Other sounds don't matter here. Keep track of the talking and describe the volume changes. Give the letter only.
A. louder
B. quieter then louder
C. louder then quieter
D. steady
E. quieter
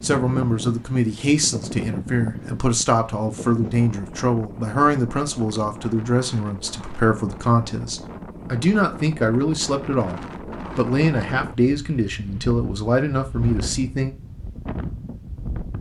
D.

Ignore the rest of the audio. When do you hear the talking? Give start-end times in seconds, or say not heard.
0.0-14.2.